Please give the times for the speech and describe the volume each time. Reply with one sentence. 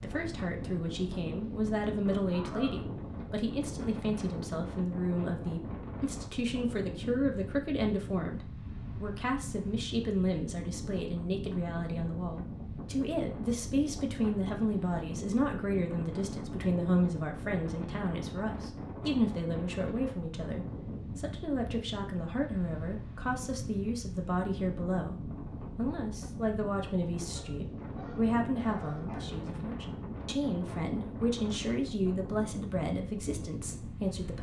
The speech can be heard from 0.0 to 34.3 s, at a steady volume.